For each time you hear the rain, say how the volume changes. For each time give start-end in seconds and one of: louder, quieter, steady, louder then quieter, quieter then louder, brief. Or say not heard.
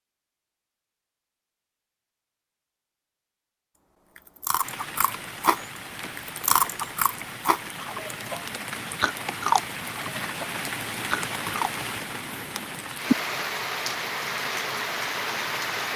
4.6-15.9 louder.